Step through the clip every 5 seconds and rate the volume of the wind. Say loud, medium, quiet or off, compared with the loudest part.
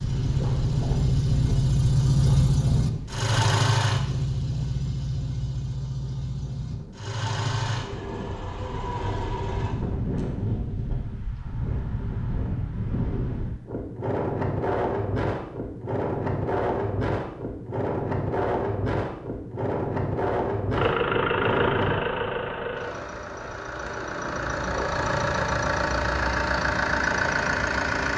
medium, medium, loud, loud, loud, off.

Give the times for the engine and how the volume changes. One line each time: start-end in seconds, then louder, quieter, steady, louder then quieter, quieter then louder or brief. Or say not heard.
0.0-9.8 quieter
20.7-28.1 quieter then louder.